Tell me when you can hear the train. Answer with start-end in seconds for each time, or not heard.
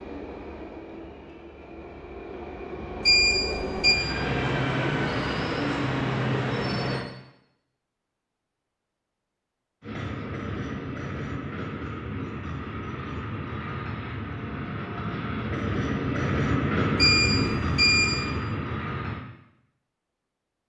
0.0-7.0, 9.8-19.2.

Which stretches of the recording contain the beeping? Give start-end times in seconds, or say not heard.
3.0-4.0, 16.9-18.2.